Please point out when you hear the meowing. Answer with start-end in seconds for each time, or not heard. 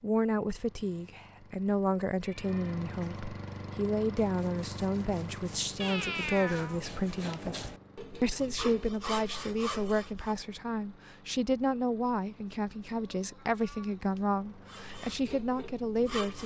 2.2-3.2, 5.8-6.8, 12.9-14.2.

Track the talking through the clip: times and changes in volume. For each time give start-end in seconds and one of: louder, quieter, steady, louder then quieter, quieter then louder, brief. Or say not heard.
0.0-16.4 steady.